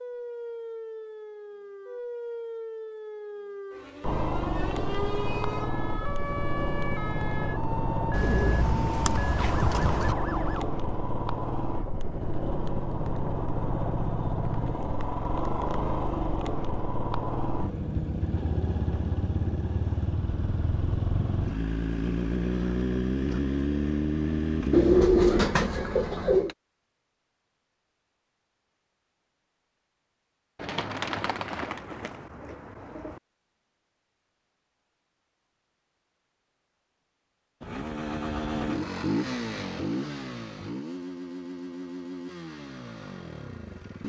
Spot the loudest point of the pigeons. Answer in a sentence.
The volume of the pigeons peaks at 25 seconds.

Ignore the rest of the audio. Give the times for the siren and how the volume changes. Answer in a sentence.
You can hear the siren from 0.0 to 10.7 s, at a steady volume.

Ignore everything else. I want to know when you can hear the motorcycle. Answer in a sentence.
The motorcycle can be heard from 4.0 to 25.1 s and from 37.6 to 44.0 s.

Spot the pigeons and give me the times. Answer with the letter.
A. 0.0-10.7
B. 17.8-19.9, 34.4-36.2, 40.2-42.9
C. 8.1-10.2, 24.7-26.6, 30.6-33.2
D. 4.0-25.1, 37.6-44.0
C.